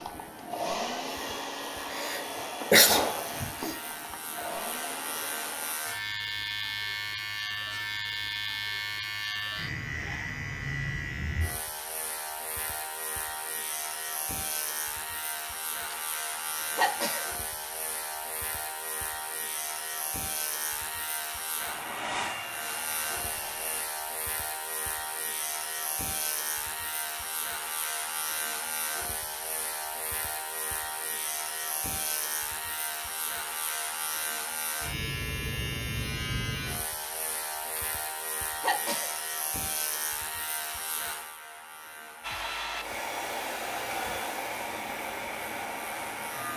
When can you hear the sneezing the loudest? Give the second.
3 s.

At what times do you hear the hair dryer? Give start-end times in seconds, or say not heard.
0.0-5.8, 21.6-23.9, 42.2-46.5.